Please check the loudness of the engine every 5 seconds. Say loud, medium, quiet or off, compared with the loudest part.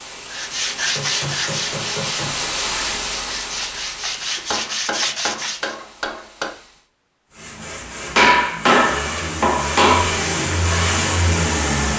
off, medium, loud.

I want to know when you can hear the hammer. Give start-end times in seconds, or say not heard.
0.5-2.5, 4.5-6.5, 8.2-10.1.